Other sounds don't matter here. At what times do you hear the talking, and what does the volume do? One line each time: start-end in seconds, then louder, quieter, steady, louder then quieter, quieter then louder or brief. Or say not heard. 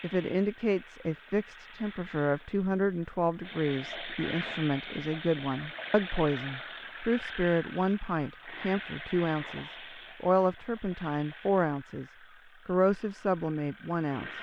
0.0-14.3 steady.